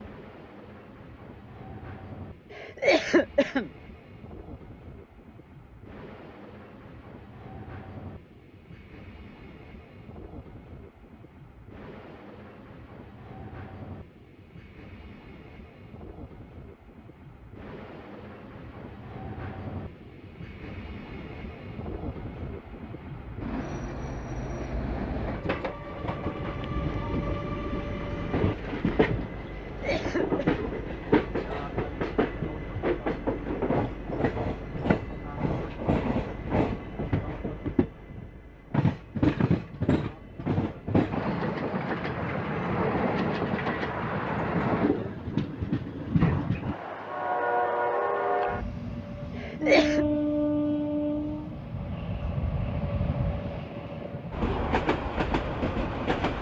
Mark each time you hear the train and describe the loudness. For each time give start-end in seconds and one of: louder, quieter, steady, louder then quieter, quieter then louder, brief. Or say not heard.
0.0-56.3 louder.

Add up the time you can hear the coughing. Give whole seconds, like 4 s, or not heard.
3 s.